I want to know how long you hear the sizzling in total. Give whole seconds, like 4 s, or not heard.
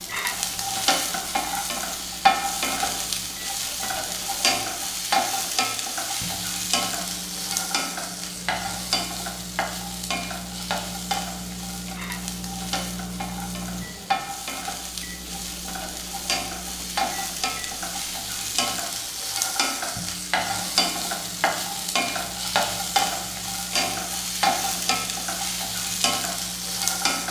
27 s.